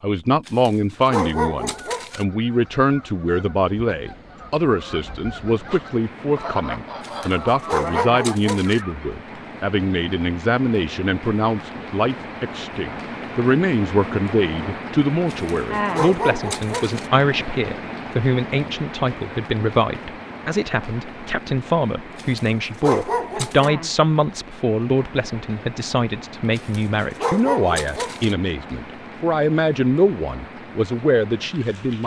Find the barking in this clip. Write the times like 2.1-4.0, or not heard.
0.5-2.2, 7.0-8.8, 15.3-17.1, 22.1-23.7, 26.6-28.4.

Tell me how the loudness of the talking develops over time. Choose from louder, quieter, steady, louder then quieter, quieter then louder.
steady.